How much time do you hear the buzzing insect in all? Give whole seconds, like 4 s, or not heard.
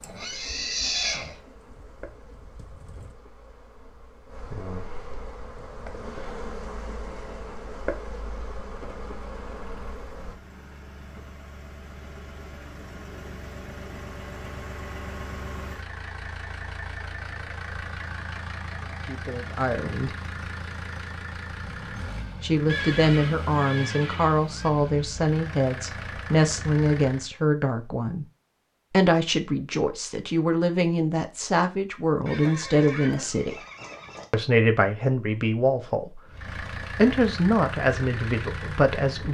10 s.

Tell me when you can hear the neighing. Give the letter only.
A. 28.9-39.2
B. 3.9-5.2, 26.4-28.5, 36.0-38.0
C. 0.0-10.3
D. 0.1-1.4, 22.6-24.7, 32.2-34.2
D.